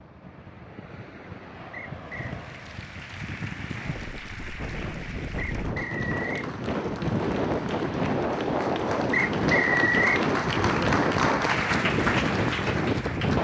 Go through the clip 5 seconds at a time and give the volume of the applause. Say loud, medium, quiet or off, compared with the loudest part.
quiet, medium, loud.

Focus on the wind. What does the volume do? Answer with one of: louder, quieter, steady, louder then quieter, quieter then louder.
louder.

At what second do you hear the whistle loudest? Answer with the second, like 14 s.
10 s.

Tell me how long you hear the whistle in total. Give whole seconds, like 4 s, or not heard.
3 s.